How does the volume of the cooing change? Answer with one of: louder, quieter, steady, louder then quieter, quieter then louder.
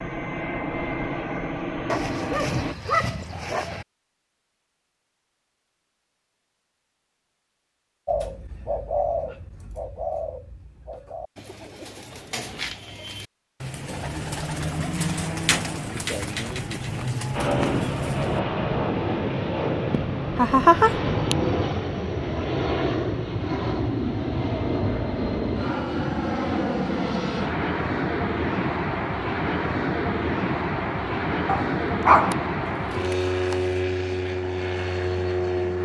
quieter then louder.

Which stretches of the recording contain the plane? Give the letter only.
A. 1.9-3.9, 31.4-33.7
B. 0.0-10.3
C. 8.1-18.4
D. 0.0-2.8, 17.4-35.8
D.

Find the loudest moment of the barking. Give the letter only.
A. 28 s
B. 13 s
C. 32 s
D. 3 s
C.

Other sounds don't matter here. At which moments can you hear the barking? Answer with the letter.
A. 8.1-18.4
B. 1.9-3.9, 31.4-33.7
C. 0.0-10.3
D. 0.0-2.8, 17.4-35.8
B.